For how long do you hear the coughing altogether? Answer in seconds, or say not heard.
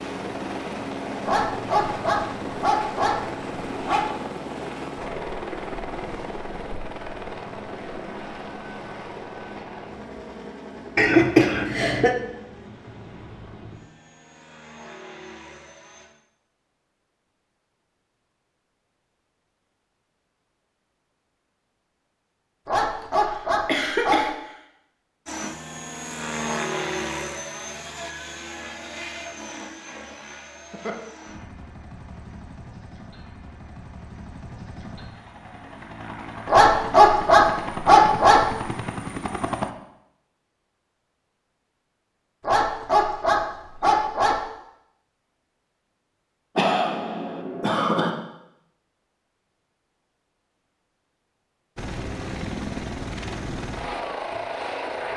4 s.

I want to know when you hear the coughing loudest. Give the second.
11 s.